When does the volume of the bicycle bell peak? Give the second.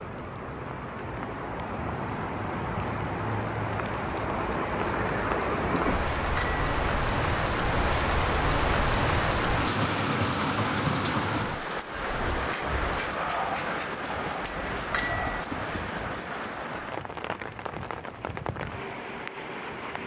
15 s.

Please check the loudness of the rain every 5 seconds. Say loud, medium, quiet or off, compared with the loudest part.
medium, loud, loud, medium.